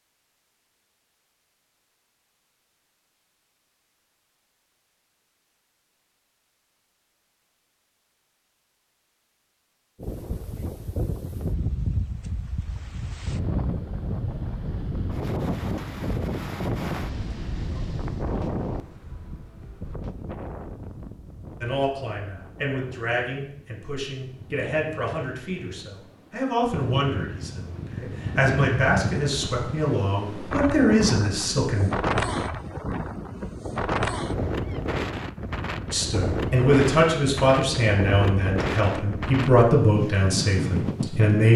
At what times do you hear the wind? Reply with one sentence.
The wind can be heard from 10.0 to 41.5 s.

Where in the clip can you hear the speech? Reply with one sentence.
The speech can be heard from 21.6 to 31.9 s and from 35.9 to 41.5 s.